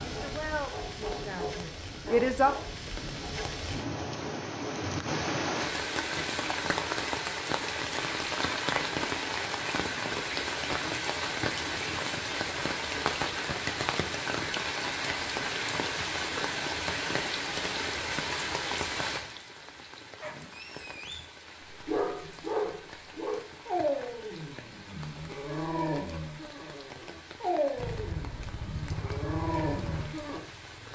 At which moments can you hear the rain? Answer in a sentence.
You can hear the rain from 0.0 to 30.9 s.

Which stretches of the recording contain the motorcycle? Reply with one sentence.
The motorcycle can be heard from 27.8 to 30.9 s.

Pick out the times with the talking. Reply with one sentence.
The talking can be heard from 0.1 to 2.5 s.